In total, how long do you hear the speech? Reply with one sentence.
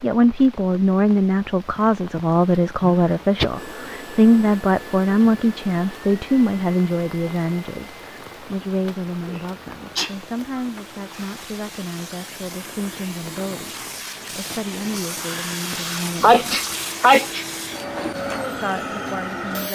The speech can be heard for 18 seconds in total.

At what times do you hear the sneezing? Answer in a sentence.
You can hear the sneezing from 2.8 to 3.5 s, from 9.2 to 10.6 s and from 16.2 to 17.4 s.